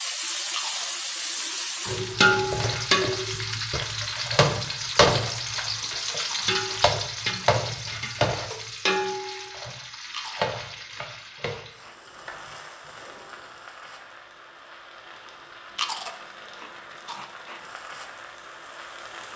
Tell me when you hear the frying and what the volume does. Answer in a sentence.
You can hear the frying from 0.0 to 19.3 s, getting quieter.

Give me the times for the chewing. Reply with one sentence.
The chewing can be heard from 0.5 to 2.0 s, from 5.0 to 6.8 s, from 10.1 to 11.9 s and from 15.8 to 17.6 s.